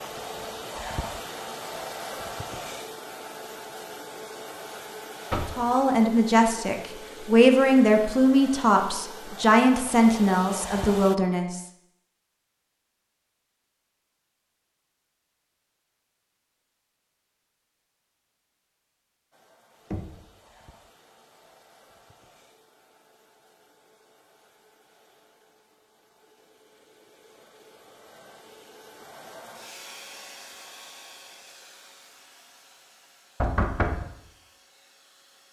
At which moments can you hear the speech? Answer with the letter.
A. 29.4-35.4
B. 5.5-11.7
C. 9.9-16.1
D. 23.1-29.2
B.